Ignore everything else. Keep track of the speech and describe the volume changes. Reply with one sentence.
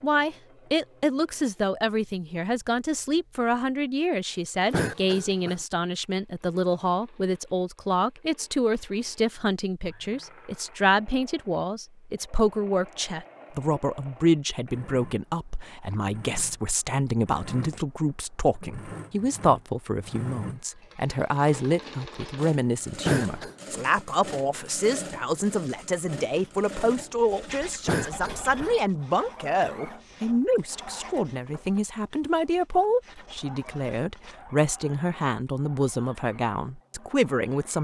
The loudness of the speech stays about the same.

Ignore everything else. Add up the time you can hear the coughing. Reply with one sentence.
You can hear the coughing for 2 seconds altogether.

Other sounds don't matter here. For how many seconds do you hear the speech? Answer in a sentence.
The speech can be heard for 38 seconds in total.